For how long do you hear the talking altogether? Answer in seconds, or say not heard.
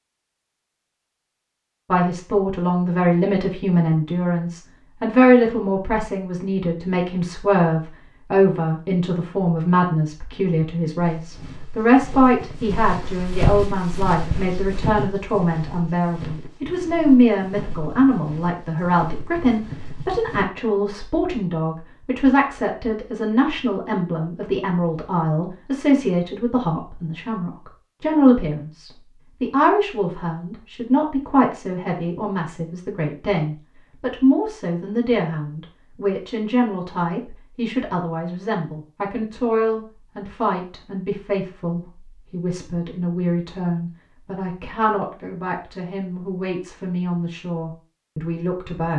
47 s.